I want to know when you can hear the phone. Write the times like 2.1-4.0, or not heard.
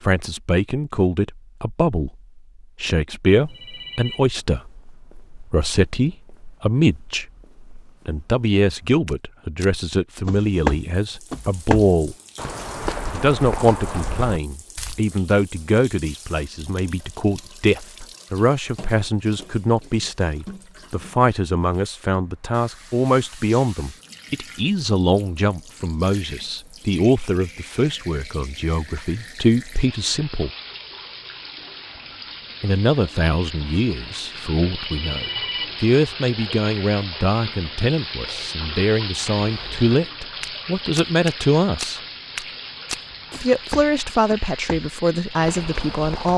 3.5-4.2, 34.7-35.8.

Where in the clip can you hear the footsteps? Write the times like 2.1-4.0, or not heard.
3.4-15.0, 39.3-46.3.